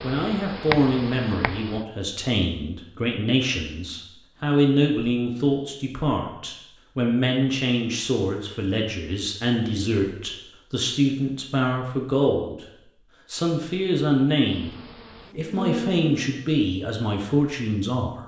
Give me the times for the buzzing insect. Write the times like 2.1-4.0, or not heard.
0.0-1.9, 14.4-16.5.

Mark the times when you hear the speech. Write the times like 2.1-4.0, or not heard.
0.0-12.7, 13.3-14.7, 15.3-18.2.